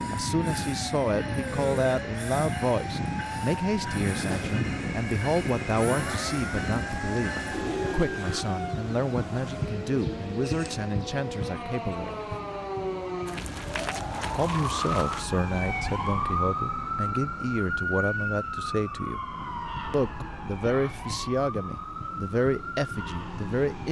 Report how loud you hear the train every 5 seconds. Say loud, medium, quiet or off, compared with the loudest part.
loud, loud, medium, quiet, medium.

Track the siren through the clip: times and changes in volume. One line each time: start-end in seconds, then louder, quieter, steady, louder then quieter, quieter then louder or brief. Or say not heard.
0.1-23.8 louder then quieter.